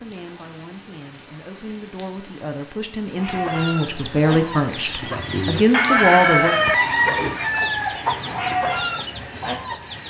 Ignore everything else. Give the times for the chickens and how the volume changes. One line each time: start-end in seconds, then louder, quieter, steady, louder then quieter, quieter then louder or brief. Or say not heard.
3.1-10.0 louder then quieter.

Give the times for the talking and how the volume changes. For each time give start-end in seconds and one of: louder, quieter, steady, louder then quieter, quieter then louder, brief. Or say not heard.
0.0-6.5 louder.